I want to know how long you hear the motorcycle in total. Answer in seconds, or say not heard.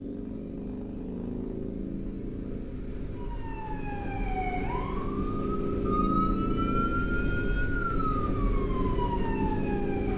10 s.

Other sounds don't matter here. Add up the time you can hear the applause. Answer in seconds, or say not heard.
not heard.